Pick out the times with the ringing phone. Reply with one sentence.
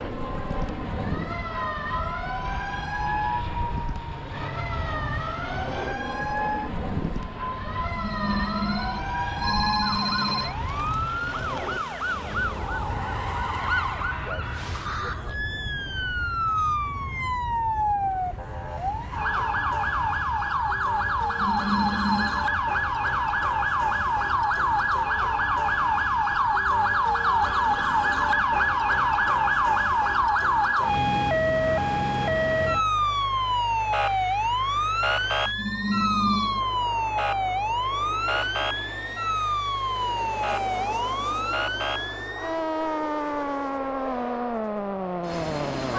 You can hear the ringing phone from 7.8 to 10.6 s, from 21.2 to 22.4 s and from 35.5 to 36.6 s.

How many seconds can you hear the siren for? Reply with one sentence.
You can hear the siren for 46 seconds altogether.